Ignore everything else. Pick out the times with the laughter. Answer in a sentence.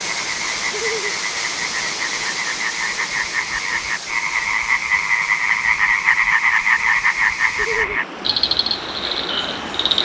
You can hear the laughter from 0.7 to 1.1 s and from 7.5 to 8.0 s.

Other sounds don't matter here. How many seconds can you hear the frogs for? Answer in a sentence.
The frogs can be heard for 10 seconds in total.